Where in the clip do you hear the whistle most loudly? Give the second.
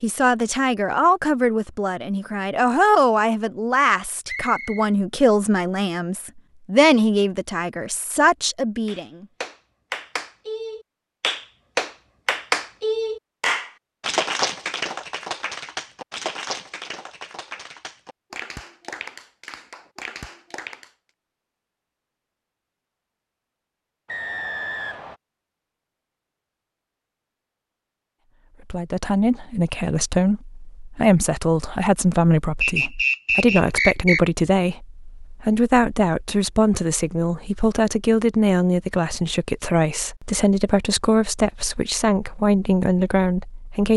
33 s.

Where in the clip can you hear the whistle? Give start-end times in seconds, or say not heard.
4.2-5.0, 24.1-25.1, 32.6-34.2.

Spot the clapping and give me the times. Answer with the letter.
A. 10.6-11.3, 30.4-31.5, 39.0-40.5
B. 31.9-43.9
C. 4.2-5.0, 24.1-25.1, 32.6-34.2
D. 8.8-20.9
D.